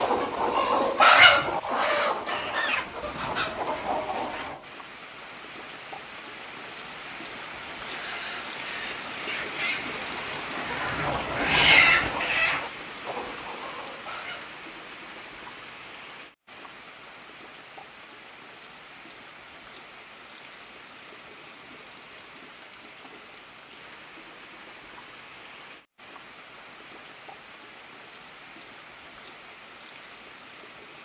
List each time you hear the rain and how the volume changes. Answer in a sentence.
You can hear the rain from 0.0 to 31.0 s, getting louder then quieter.